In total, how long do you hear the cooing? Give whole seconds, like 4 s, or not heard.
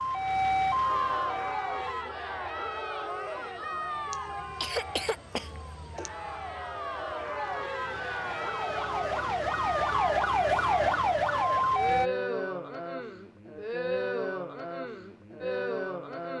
not heard.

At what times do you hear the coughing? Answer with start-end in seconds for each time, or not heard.
4.1-6.1.